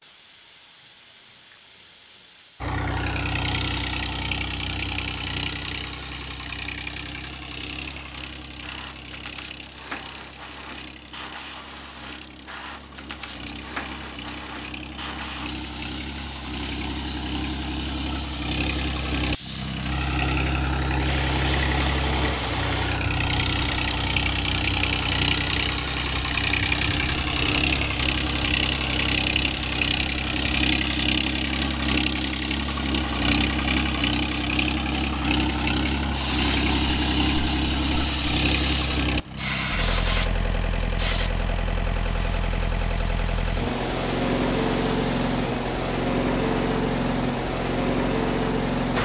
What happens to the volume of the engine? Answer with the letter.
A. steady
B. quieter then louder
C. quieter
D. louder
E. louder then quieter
D.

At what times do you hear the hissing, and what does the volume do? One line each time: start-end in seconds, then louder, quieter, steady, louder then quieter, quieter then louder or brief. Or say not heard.
0.0-46.0 louder.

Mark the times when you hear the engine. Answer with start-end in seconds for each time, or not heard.
2.6-49.0.